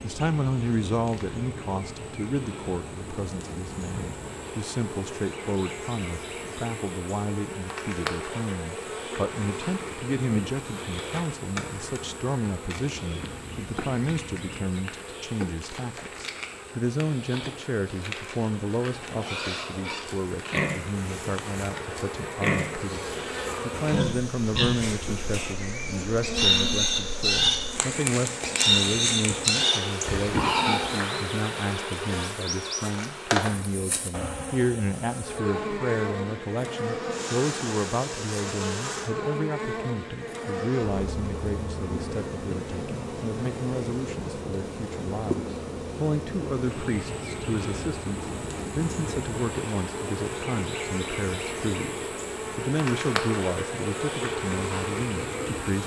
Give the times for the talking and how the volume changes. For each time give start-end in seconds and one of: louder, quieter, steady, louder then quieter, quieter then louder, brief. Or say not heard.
0.0-55.8 steady.